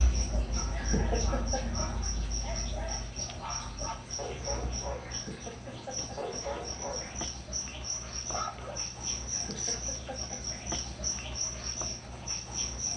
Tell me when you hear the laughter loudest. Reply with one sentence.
The volume of the laughter peaks at 1 second.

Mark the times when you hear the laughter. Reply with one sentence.
The laughter can be heard from 0.8 to 1.6 s, from 5.1 to 6.3 s and from 9.3 to 10.4 s.